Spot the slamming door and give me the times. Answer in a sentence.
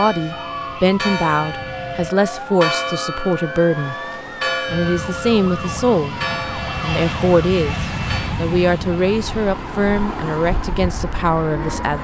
You can't hear the slamming door here.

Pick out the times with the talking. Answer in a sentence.
The talking can be heard from 0.0 to 4.0 s, from 4.7 to 6.2 s and from 6.8 to 11.9 s.